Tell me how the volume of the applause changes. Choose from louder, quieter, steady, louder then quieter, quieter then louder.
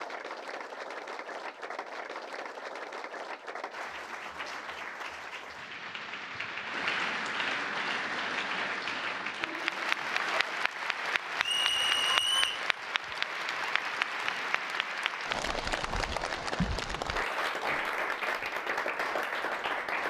louder.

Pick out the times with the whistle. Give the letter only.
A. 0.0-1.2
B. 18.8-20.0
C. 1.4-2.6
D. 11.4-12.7
D.